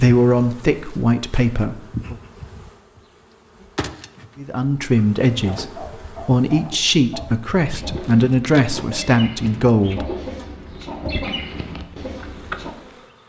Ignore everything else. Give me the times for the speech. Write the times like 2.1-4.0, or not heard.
0.0-2.1, 4.3-10.1.